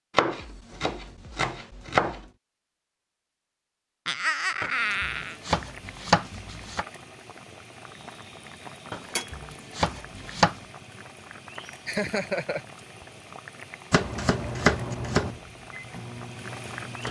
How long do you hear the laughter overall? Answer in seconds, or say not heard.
2 s.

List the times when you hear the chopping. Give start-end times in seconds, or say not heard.
0.1-2.2, 4.6-6.8, 8.9-10.6, 13.9-15.3.